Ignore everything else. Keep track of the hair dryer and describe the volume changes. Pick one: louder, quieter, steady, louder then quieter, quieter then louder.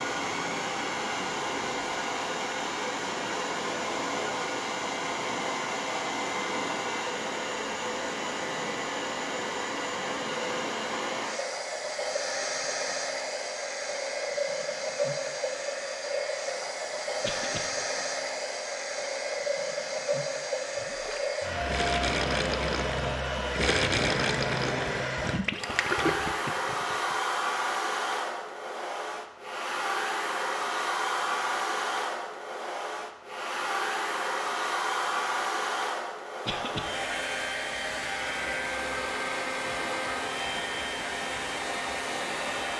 steady.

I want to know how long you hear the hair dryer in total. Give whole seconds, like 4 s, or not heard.
43 s.